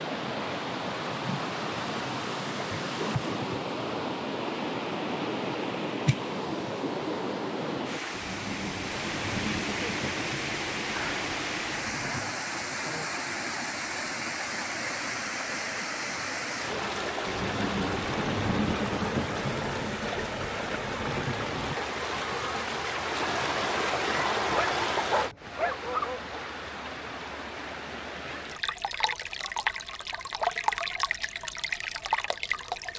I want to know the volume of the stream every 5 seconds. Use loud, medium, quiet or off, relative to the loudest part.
loud, loud, loud, loud, loud, medium, loud.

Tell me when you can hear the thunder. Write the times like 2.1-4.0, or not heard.
8.1-12.3, 17.2-21.8.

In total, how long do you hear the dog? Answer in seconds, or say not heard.
2 s.